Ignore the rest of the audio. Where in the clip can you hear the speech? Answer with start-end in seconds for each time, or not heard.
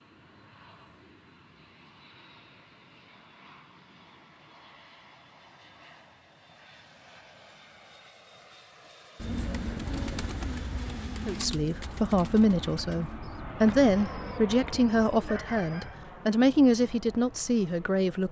11.2-18.2.